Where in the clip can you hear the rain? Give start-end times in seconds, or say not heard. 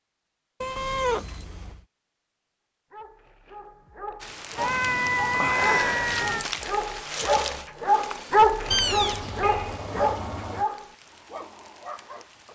4.2-12.4.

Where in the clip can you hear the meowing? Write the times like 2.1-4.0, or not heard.
0.6-1.8, 4.5-6.5, 8.7-10.7.